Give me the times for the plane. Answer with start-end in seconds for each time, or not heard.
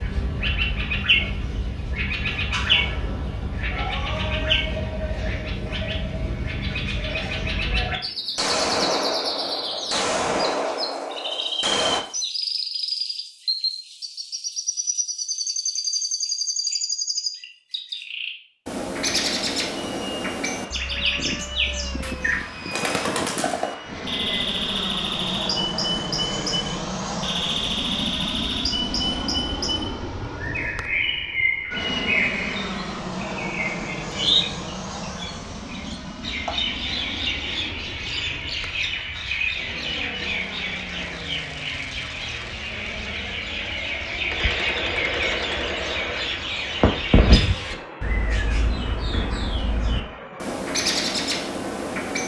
19.8-52.2.